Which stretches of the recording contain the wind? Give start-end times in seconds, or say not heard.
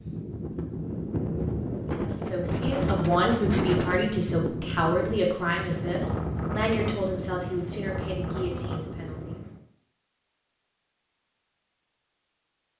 0.0-9.6.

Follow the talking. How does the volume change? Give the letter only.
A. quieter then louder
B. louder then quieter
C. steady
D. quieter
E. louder
D.